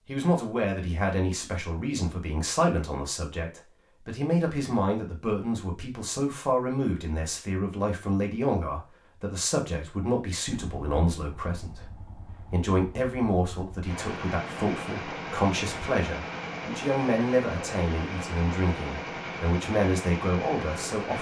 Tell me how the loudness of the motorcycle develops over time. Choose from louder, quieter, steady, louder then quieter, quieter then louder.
louder.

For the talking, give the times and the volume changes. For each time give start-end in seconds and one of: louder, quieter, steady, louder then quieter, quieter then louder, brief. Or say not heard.
0.1-21.1 steady.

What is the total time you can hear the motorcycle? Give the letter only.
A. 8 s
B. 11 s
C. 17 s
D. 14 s
B.